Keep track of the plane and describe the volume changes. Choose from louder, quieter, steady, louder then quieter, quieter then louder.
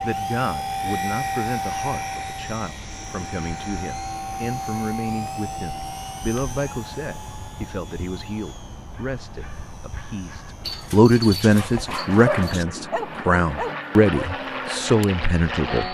quieter then louder.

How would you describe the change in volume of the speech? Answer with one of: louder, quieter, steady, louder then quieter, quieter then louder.
louder.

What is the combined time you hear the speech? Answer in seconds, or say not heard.
16 s.